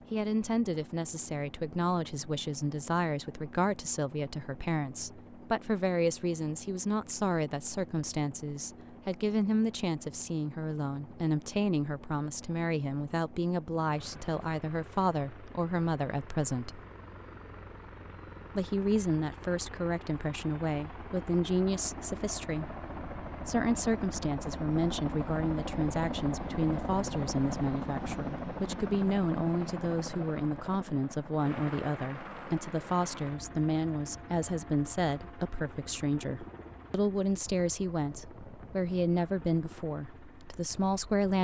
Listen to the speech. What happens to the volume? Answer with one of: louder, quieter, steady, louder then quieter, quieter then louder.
steady.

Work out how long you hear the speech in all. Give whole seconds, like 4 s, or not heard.
39 s.